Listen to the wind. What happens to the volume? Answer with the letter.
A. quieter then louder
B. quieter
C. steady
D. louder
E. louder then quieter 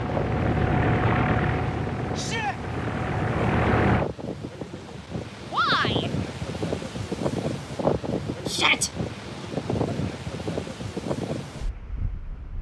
D.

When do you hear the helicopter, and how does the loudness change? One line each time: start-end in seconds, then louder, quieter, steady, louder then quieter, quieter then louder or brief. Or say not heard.
0.0-4.0 quieter then louder.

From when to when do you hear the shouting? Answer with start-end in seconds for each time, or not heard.
2.1-2.6, 5.5-6.1, 8.4-8.9.